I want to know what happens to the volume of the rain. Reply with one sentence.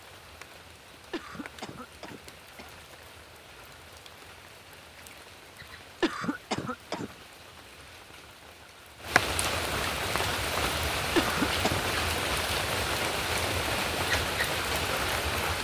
The volume of the rain goes up.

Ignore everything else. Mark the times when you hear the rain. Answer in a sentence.
The rain can be heard from 0.0 to 15.6 s.